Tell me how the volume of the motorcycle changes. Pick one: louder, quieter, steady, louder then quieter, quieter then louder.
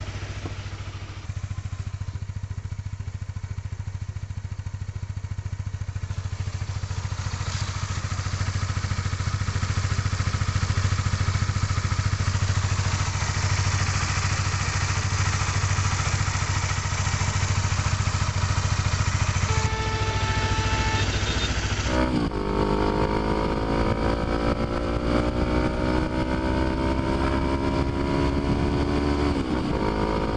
louder.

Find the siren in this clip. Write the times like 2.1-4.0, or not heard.
not heard.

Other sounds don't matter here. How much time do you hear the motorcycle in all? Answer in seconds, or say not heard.
30 s.